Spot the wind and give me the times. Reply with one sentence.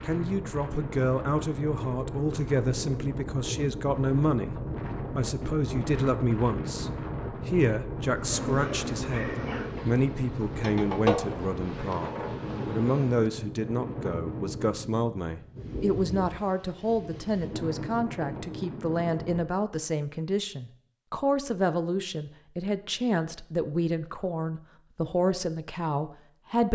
The wind can be heard from 0.0 to 19.4 s.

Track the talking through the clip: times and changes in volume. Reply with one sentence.
The talking can be heard from 0.0 to 4.5 s, at a steady volume; and from 5.2 to 26.7 s, at a steady volume.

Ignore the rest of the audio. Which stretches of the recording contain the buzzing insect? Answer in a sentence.
You can hear the buzzing insect from 8.1 to 13.3 s.